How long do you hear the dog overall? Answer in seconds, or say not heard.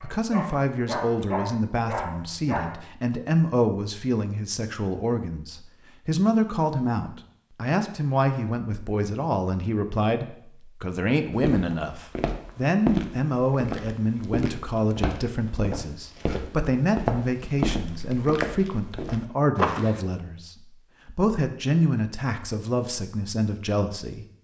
3 s.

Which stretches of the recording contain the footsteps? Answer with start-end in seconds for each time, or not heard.
11.3-20.0.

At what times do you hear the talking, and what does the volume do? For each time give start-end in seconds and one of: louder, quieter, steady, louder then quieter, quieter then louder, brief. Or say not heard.
0.0-24.2 steady.